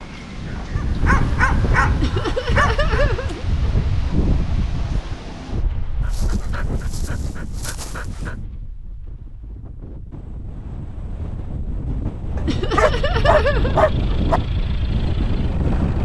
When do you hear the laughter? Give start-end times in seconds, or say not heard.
2.0-3.9, 12.4-14.3.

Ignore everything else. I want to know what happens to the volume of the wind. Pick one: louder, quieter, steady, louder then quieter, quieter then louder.
quieter then louder.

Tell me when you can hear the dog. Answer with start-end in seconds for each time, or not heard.
0.8-3.0, 6.0-8.3, 12.3-14.4.